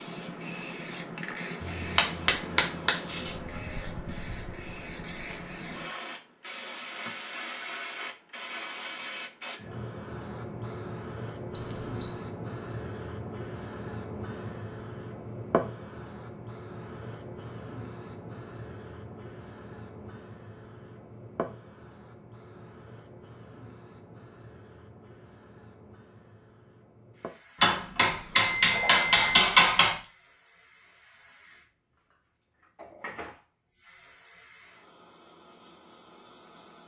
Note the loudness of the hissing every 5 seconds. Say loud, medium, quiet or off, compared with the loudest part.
loud, loud, loud, loud, medium, quiet, quiet, quiet.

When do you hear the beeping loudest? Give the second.
12 s.